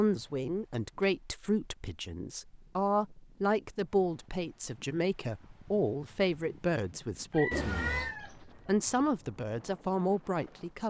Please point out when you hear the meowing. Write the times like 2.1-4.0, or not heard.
7.5-8.2.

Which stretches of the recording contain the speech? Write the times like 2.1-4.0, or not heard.
0.0-10.8.